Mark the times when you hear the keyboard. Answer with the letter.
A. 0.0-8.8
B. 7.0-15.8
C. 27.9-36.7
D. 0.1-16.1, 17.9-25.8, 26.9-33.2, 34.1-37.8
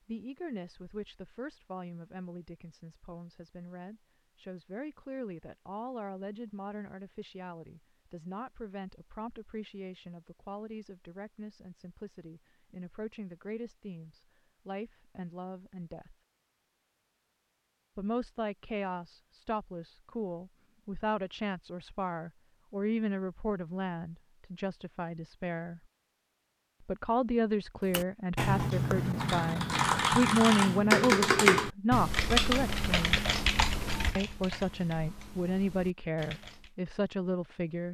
C.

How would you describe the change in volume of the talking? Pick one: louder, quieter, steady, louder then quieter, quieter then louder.
louder.